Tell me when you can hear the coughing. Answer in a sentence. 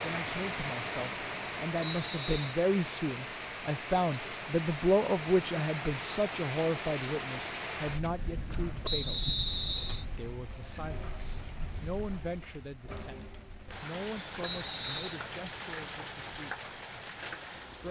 The coughing can't be heard in this clip.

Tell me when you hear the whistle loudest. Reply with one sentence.
The volume of the whistle peaks at 9 seconds.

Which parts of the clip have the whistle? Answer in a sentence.
You can hear the whistle from 1.8 to 2.5 s, from 8.8 to 10.1 s and from 14.4 to 15.2 s.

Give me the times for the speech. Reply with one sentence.
The speech can be heard from 0.0 to 9.2 s and from 10.2 to 16.7 s.